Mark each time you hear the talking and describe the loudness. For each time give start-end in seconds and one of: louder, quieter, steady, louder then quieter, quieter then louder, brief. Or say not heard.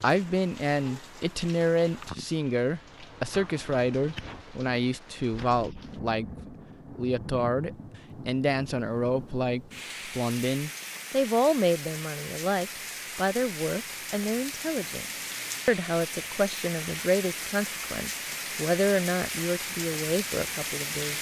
0.0-21.1 steady.